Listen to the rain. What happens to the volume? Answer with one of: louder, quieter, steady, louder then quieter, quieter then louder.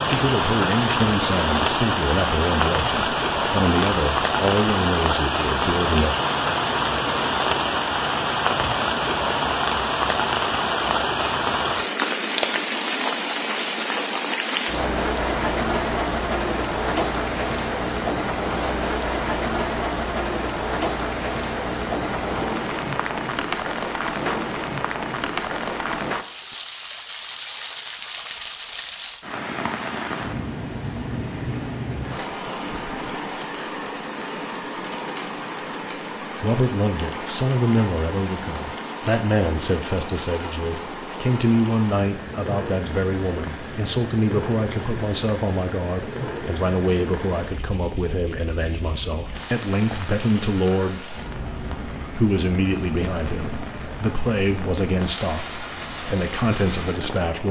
quieter.